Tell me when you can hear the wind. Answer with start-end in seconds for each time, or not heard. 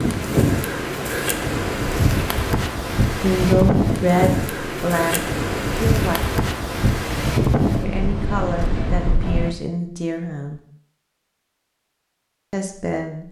0.0-9.6.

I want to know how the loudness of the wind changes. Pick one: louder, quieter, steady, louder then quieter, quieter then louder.
steady.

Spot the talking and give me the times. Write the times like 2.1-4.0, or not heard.
3.2-6.2, 7.8-10.6, 12.5-13.2.